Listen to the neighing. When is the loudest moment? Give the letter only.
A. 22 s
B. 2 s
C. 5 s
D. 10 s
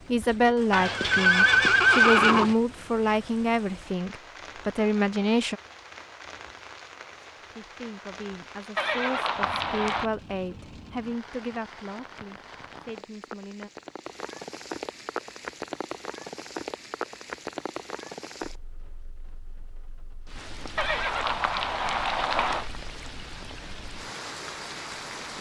B.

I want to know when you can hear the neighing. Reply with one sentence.
You can hear the neighing from 0.7 to 2.5 s, from 8.8 to 10.1 s and from 20.8 to 22.6 s.